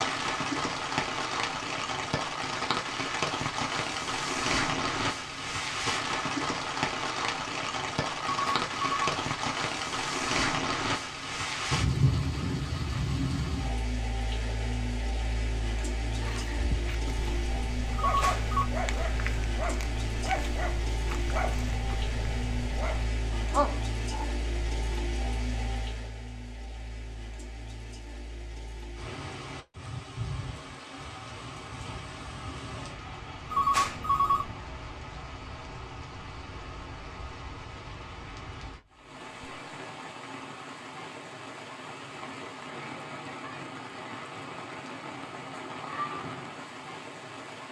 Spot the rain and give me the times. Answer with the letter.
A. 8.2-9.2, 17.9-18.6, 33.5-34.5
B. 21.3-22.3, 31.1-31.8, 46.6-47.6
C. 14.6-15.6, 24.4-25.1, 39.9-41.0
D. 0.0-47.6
D.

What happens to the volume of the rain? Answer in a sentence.
The loudness of the rain goes down.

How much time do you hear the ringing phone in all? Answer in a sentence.
You can hear the ringing phone for 3 seconds altogether.